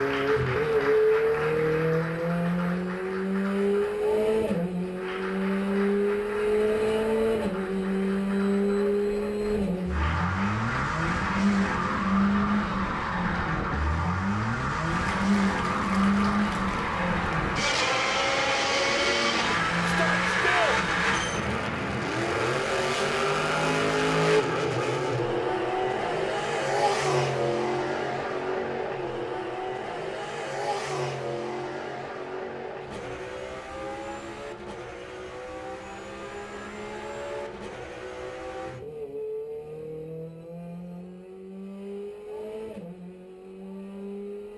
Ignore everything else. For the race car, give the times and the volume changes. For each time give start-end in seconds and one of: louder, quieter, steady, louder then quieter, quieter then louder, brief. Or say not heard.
0.0-44.5 quieter.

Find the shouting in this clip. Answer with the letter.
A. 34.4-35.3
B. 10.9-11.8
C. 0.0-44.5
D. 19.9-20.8
D.